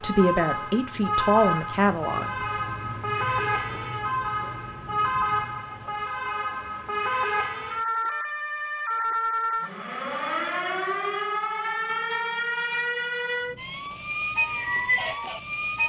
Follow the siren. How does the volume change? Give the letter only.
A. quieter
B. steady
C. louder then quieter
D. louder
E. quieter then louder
B.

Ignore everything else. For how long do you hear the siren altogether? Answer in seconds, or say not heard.
16 s.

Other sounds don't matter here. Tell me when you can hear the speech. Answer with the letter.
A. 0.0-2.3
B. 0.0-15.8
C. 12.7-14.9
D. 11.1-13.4
A.